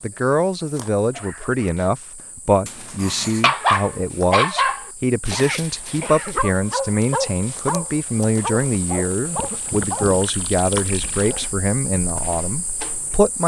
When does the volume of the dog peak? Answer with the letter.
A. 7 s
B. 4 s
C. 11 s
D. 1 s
B.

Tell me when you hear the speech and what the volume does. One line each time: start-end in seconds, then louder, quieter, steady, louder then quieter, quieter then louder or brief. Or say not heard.
0.0-13.4 steady.